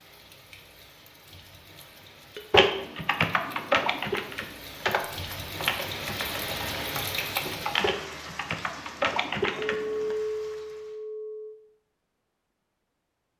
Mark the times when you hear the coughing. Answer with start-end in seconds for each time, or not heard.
not heard.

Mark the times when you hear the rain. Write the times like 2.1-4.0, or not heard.
0.0-11.0.